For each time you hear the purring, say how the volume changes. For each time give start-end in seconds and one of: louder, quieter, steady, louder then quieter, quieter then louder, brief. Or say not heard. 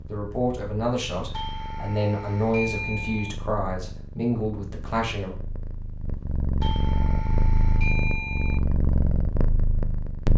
0.0-10.3 louder.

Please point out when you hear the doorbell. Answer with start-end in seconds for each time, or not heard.
1.3-3.4, 6.6-8.6.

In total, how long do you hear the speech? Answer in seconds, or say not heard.
5 s.